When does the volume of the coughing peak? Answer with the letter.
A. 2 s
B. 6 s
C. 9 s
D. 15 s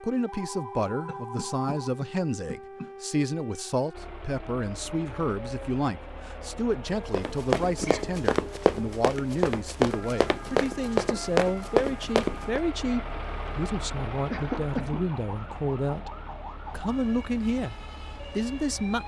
D.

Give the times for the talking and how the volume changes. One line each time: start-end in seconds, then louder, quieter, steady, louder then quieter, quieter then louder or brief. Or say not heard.
0.0-16.1 steady
16.7-17.8 brief
18.4-19.0 brief.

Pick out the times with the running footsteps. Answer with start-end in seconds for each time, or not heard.
7.1-12.6.